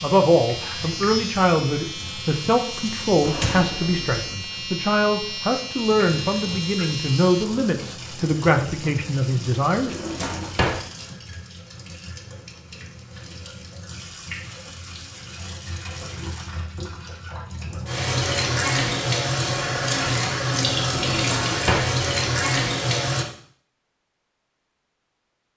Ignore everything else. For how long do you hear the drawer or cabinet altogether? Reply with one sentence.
The drawer or cabinet can be heard for 3 seconds in total.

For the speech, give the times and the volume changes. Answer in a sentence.
The speech can be heard from 0.0 to 9.9 s, at a steady volume.